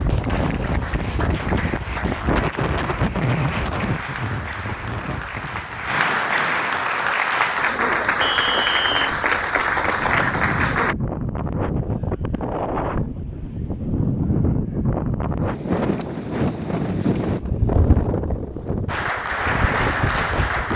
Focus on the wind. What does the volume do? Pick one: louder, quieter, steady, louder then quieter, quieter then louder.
quieter then louder.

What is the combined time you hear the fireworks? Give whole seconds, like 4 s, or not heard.
not heard.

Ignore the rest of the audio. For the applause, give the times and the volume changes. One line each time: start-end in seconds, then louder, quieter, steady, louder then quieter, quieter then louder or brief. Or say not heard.
0.0-10.9 louder
18.9-20.7 brief.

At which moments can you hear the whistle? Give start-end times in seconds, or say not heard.
8.2-9.2.